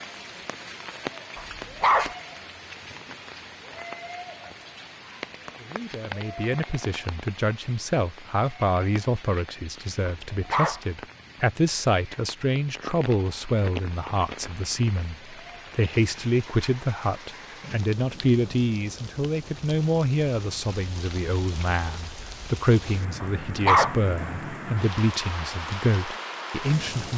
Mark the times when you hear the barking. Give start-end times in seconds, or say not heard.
1.4-2.1, 10.1-10.8, 23.2-23.9.